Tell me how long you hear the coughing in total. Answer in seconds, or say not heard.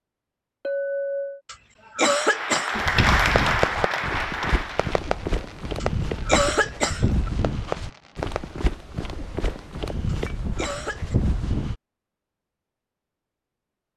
4 s.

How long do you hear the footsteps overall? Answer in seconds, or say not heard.
9 s.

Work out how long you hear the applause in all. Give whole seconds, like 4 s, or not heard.
3 s.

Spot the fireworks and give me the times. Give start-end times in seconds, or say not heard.
3.1-8.7.